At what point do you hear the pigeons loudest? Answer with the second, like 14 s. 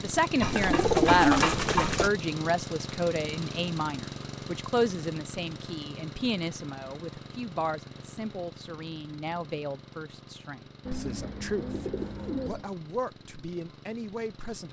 1 s.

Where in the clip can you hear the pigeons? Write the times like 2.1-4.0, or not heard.
0.4-2.1, 10.8-12.7.